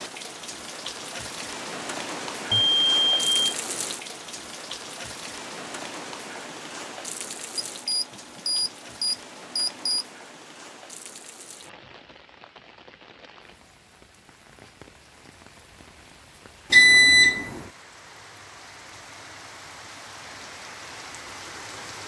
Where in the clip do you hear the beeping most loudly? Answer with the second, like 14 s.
17 s.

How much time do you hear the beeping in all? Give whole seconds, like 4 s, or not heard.
4 s.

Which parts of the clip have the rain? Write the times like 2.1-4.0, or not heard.
0.0-22.0.